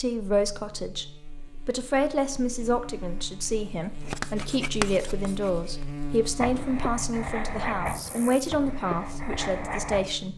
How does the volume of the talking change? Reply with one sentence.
The volume of the talking stays about the same.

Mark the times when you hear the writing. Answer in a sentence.
The writing can be heard from 4.0 to 10.1 s.